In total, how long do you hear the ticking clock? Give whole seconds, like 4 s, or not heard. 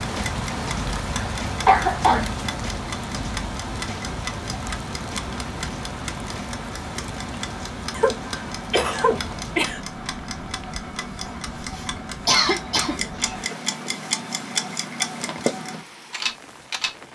17 s.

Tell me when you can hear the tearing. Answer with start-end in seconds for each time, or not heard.
not heard.